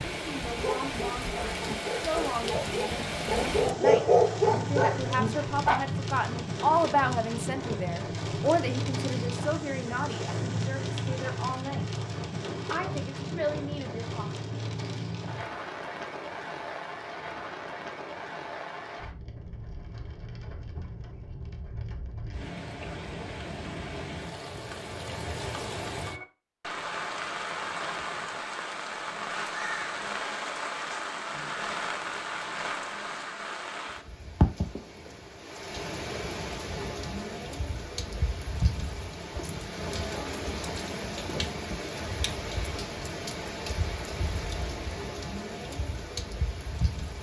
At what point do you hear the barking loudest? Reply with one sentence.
The loudest moment of the barking is at 4 seconds.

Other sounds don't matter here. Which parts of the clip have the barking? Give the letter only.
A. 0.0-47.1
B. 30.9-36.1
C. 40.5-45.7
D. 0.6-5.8
D.